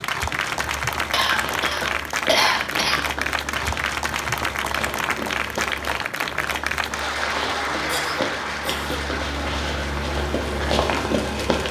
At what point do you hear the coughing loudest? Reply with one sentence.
The volume of the coughing peaks at 2 seconds.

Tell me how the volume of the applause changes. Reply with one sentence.
The loudness of the applause goes down.